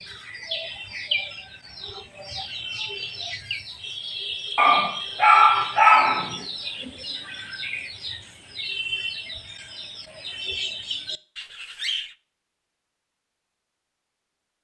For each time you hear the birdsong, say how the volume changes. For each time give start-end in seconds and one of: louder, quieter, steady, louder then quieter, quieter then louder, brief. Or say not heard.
0.0-12.2 steady.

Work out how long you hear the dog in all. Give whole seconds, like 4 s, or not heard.
2 s.